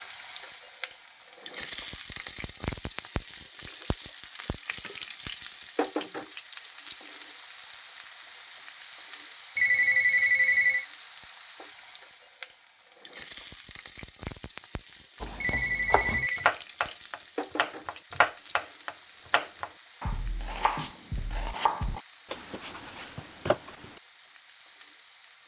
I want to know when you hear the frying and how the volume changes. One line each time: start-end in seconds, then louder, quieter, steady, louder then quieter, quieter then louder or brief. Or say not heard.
0.0-25.4 quieter.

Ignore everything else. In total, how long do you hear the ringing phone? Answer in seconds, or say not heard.
2 s.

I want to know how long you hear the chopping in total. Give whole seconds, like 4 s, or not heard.
9 s.